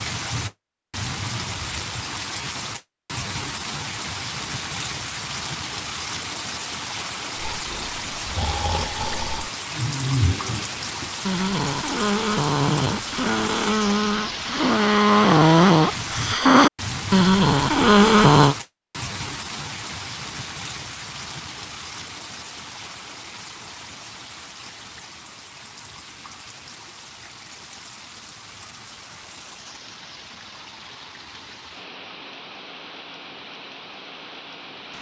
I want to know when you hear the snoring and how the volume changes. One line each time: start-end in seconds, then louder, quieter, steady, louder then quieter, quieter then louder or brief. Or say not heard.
7.3-18.6 louder.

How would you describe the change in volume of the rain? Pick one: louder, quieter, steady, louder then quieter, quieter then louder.
quieter.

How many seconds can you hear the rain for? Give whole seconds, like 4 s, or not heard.
35 s.